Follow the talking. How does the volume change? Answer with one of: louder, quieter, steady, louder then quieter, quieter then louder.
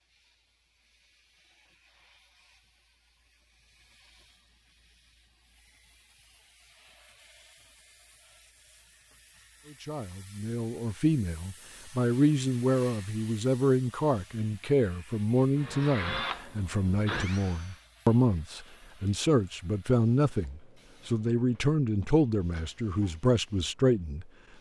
steady.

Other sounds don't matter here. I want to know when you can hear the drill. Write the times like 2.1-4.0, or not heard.
15.6-17.9.